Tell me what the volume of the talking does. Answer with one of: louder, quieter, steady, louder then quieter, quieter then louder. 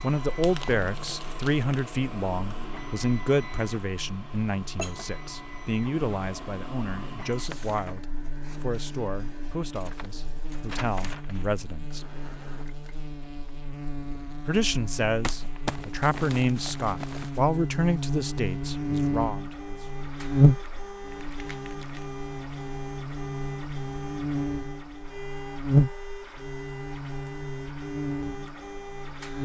quieter then louder.